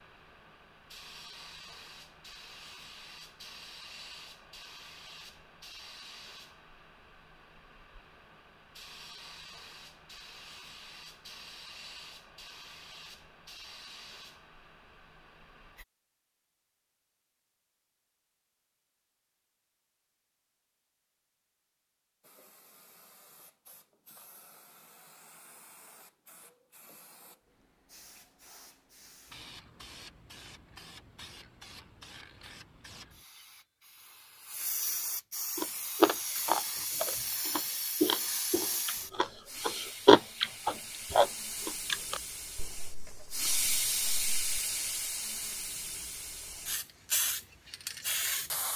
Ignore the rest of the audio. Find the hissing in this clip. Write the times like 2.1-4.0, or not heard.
0.0-15.8, 22.2-48.7.